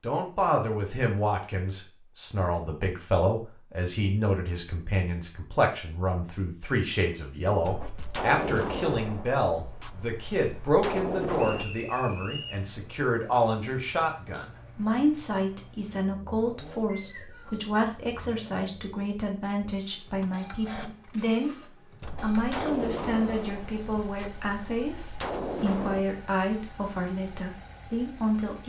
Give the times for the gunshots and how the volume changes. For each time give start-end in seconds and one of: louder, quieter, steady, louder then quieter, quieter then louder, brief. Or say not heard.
7.7-11.7 quieter then louder
22.0-26.1 quieter then louder.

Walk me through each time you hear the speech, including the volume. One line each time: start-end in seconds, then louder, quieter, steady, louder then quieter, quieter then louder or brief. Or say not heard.
0.0-28.6 steady.